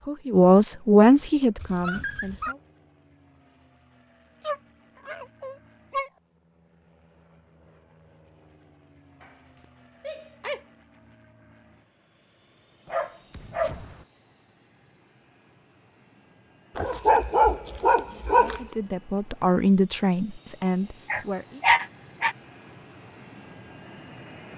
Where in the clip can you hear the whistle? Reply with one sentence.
You can't hear the whistle here.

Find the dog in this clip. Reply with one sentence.
The dog can be heard from 1.6 to 2.5 s, from 4.4 to 6.1 s, from 9.2 to 10.7 s, from 12.8 to 14.1 s, from 16.8 to 18.8 s and from 21.1 to 22.4 s.